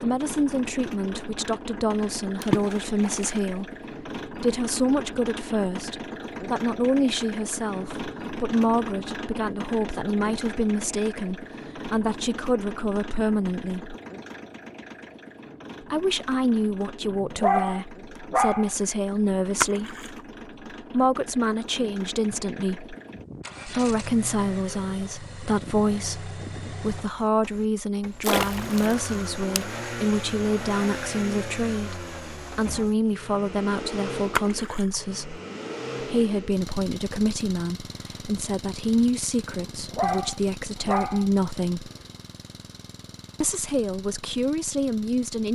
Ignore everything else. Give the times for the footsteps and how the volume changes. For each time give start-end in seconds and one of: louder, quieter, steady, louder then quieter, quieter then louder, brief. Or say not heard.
not heard.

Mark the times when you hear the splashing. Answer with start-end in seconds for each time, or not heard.
2.4-3.4, 19.6-20.2, 28.2-29.6, 34.4-35.0.